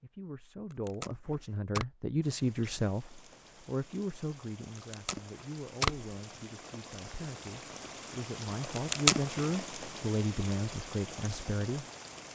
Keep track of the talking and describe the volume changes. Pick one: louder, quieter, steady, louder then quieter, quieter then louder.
quieter then louder.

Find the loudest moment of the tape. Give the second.
9 s.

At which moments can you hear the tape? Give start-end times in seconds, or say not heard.
0.7-1.9, 4.8-6.0, 8.8-9.4.